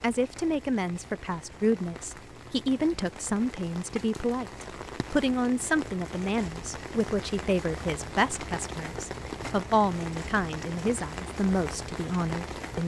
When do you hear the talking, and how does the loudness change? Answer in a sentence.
The talking can be heard from 0.0 to 12.8 s, at a steady volume.